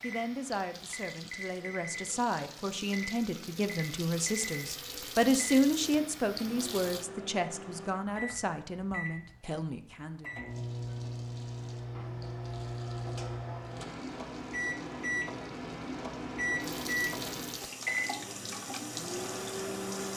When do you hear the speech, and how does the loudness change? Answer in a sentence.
You can hear the speech from 0.0 to 10.3 s, getting louder then quieter.